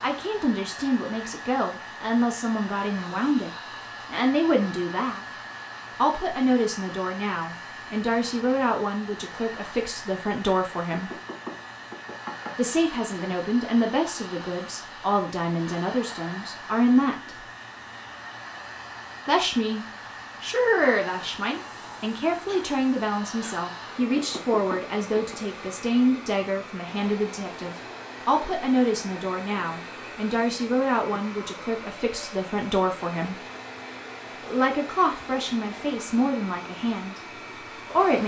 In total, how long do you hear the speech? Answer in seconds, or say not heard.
33 s.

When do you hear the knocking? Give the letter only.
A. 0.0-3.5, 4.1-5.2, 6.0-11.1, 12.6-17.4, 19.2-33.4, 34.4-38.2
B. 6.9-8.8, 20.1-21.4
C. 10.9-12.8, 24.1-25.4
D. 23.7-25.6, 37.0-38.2
C.